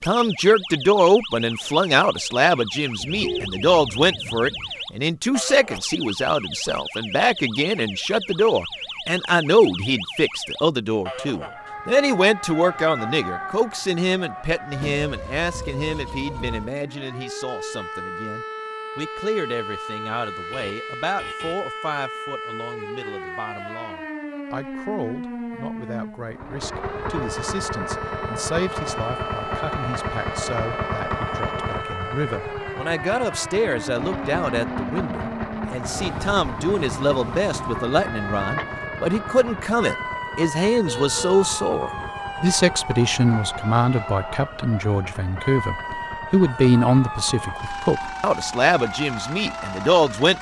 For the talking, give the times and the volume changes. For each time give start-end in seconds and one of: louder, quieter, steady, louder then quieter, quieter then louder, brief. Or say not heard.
0.1-50.3 quieter then louder.